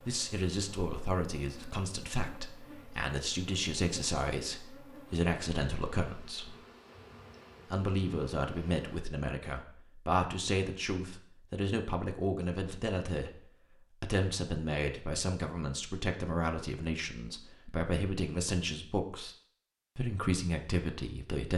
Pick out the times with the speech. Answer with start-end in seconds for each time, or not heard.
0.1-6.5, 7.7-13.4, 14.0-19.4, 19.9-21.5.